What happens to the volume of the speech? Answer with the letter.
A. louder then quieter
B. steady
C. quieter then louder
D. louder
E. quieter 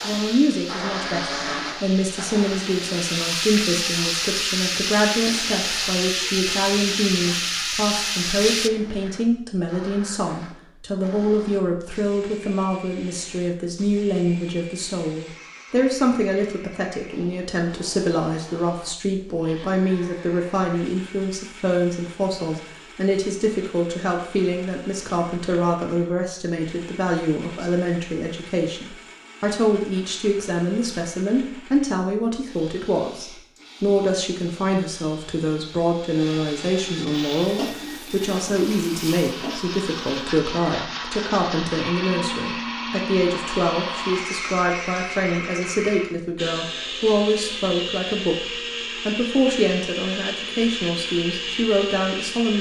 B.